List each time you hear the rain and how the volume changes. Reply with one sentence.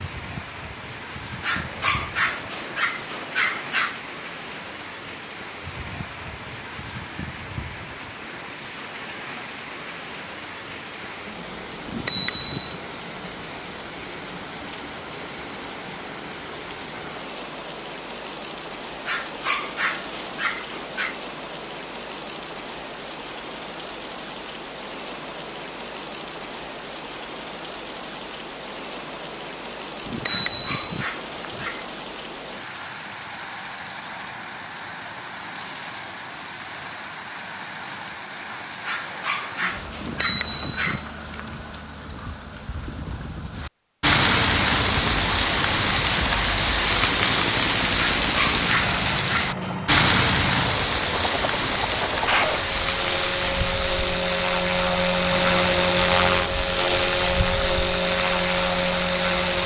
You can hear the rain from 0.0 to 59.6 s, getting louder.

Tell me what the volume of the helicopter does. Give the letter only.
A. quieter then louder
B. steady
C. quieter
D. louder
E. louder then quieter
D.